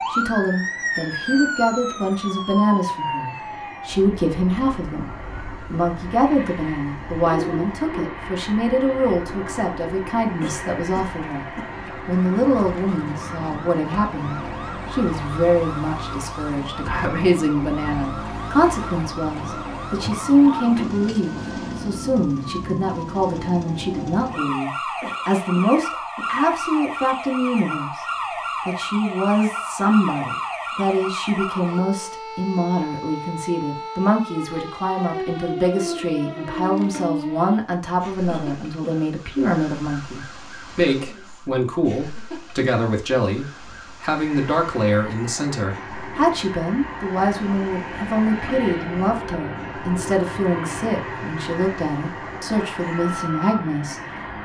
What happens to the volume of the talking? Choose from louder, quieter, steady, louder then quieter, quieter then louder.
steady.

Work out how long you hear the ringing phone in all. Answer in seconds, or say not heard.
2 s.